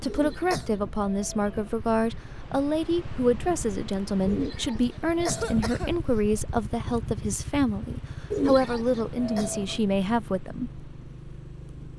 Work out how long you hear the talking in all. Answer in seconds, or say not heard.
11 s.